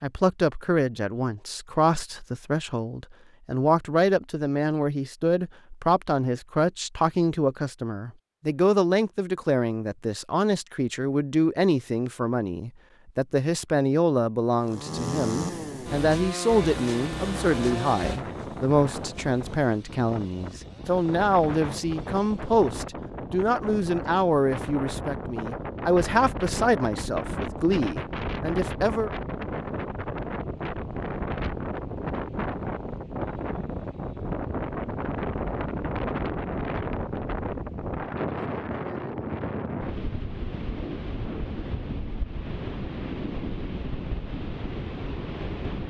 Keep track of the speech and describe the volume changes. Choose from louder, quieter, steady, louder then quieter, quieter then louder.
steady.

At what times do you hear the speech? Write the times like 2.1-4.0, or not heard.
0.0-29.1.